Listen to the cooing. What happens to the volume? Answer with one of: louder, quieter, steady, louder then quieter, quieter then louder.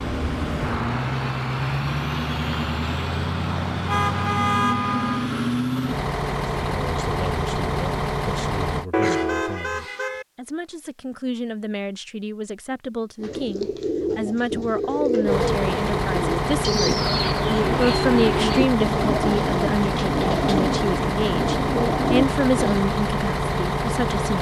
steady.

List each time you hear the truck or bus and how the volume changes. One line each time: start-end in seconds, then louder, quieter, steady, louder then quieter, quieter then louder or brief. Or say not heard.
0.0-8.8 steady
15.2-24.3 steady.